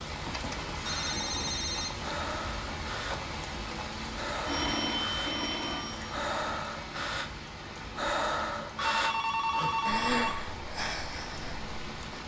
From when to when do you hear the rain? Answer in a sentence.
You can hear the rain from 0.0 to 12.2 s.